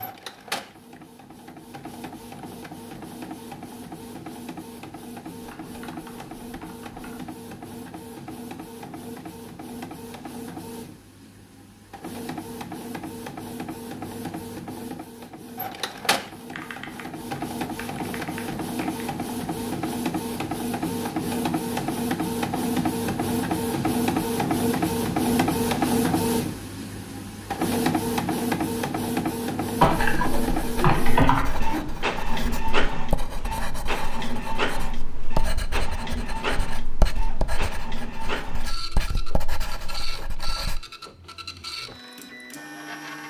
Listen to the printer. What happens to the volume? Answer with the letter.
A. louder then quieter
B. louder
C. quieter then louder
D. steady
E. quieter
A.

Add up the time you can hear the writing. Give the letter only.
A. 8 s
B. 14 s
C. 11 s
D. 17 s
C.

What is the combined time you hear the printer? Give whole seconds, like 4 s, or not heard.
43 s.